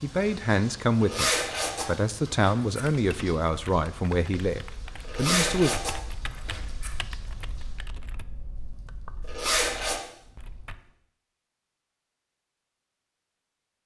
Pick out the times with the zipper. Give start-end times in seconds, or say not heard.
1.0-2.9, 5.0-6.9, 9.2-10.0.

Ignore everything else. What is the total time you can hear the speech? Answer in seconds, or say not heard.
6 s.